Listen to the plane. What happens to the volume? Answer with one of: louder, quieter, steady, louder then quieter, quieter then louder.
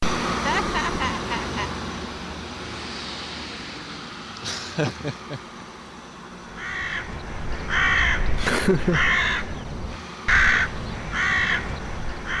quieter.